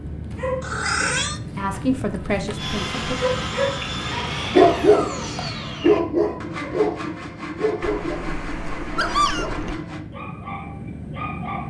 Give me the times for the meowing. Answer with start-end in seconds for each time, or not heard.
0.6-1.4, 7.8-9.8.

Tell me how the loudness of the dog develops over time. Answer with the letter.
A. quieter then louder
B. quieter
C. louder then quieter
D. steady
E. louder
C.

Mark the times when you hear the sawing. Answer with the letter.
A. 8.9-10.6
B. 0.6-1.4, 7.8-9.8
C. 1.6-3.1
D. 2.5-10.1
D.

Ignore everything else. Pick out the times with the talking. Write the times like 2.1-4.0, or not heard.
1.6-3.1.